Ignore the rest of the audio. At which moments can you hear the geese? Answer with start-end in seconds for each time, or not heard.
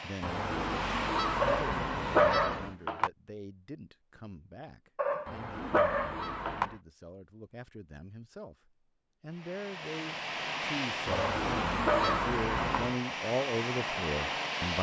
0.2-2.8, 5.2-6.8, 11.1-12.9.